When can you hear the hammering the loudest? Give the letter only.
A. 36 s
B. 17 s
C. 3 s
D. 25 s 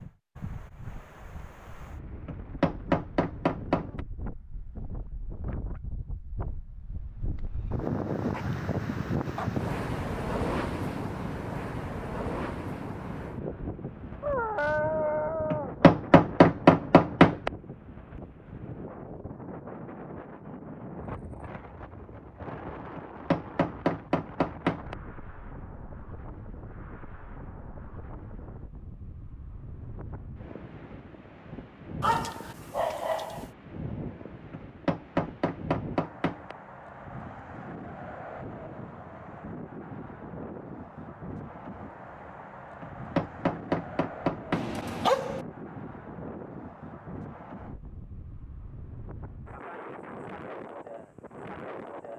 B.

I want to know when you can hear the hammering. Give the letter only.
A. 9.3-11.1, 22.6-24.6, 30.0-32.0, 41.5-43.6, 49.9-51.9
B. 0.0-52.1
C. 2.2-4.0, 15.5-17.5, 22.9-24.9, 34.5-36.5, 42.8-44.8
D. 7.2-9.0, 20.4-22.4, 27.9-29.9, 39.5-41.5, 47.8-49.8
C.